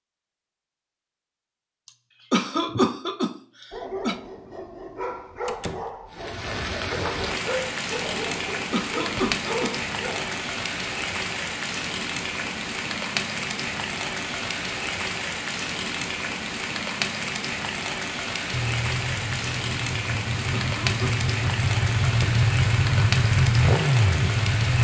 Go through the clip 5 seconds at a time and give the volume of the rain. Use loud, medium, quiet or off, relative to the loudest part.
off, loud, loud, loud, loud.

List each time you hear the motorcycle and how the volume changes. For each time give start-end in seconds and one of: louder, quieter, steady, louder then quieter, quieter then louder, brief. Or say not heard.
18.5-24.7 louder.